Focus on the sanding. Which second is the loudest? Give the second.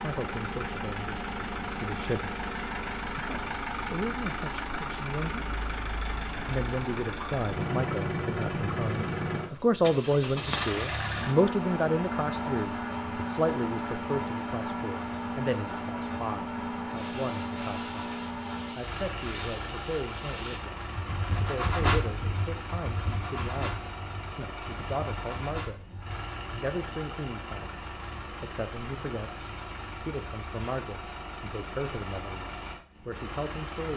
22 s.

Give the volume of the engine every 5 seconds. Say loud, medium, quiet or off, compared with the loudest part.
loud, loud, loud, loud, medium, medium, medium.